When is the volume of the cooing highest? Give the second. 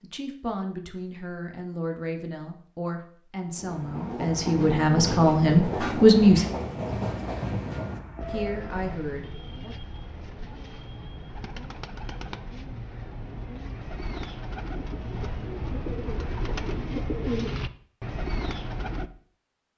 17 s.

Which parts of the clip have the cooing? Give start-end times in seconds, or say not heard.
8.2-19.1.